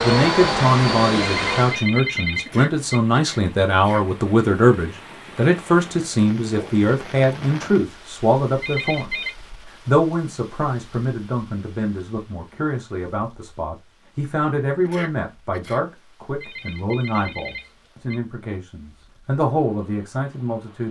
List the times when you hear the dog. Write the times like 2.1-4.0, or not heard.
not heard.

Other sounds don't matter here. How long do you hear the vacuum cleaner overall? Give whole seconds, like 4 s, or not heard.
2 s.